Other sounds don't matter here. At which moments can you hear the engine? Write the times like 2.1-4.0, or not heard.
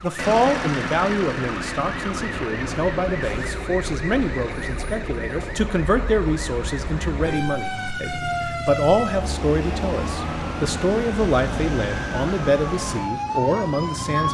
0.0-3.5.